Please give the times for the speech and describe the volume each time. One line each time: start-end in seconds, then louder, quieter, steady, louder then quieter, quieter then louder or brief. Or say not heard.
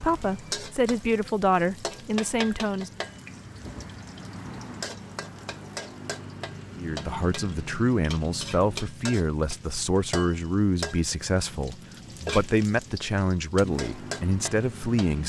0.0-2.9 brief
6.8-15.2 steady.